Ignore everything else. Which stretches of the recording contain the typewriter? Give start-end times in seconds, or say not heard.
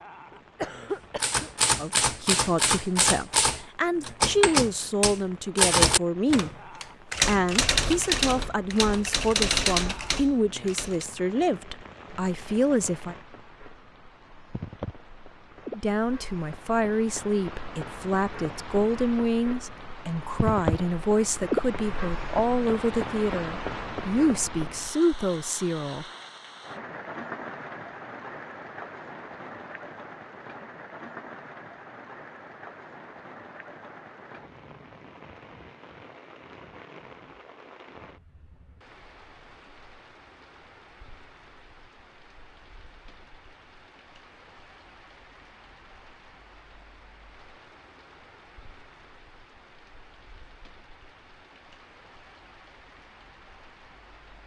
1.2-11.1.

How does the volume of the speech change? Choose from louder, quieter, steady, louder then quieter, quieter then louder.
steady.